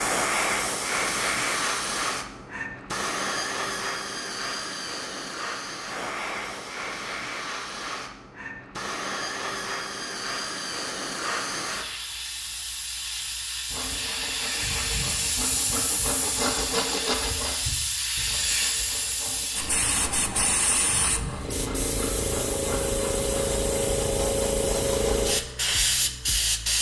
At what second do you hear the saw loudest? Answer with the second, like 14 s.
17 s.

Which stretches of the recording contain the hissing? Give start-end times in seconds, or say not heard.
0.0-26.7.